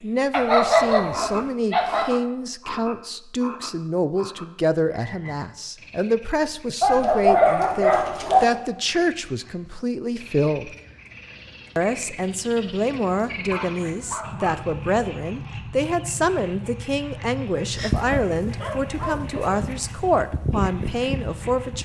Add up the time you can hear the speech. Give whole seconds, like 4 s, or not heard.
21 s.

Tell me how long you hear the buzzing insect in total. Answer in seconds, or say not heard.
4 s.